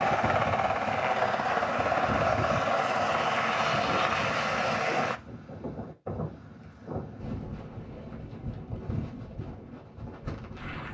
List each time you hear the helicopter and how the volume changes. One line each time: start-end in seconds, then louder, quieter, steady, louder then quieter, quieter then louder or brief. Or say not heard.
0.0-5.2 steady.